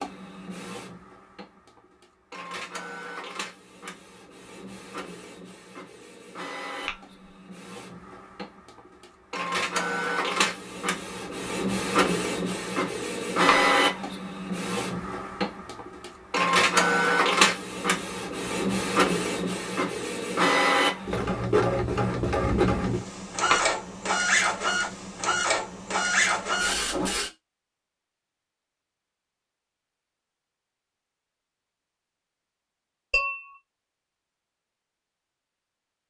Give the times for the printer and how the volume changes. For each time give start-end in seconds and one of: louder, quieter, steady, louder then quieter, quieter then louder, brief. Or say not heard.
0.0-27.3 louder.